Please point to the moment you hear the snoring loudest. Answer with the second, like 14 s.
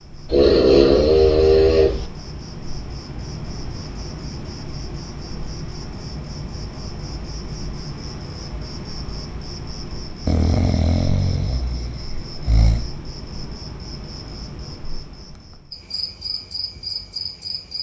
1 s.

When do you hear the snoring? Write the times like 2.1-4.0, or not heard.
0.3-2.0, 10.2-12.8.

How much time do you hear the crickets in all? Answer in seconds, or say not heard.
18 s.